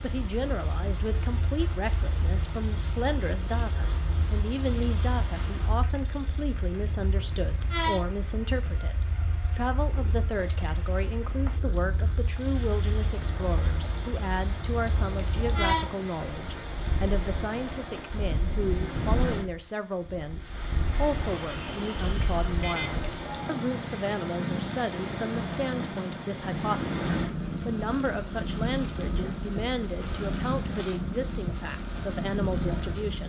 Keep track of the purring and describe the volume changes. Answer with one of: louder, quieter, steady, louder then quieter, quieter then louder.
louder.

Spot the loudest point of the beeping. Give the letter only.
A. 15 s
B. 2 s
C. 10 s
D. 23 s
D.